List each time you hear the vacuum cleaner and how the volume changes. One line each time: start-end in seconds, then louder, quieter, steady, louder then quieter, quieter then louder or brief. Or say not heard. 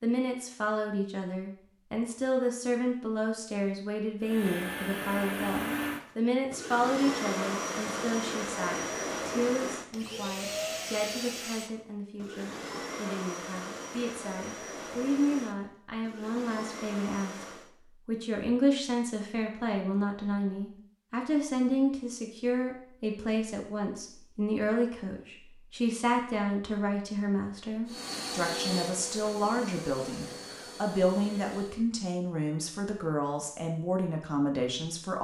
4.2-17.7 quieter
27.9-31.9 quieter.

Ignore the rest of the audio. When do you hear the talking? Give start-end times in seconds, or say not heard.
0.0-35.2.